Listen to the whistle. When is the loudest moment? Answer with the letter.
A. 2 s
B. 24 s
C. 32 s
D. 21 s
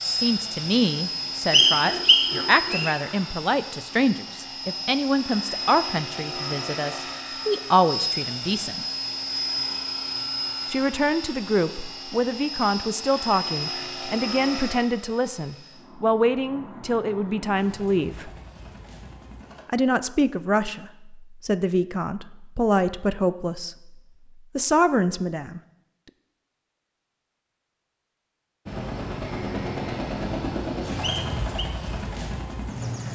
A.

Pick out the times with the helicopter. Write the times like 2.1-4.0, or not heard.
0.0-19.6, 28.6-33.1.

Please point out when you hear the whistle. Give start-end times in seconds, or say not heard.
1.5-3.0, 31.0-31.7.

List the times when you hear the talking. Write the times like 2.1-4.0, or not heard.
0.0-8.8, 10.7-18.3, 19.6-23.9, 24.6-25.6.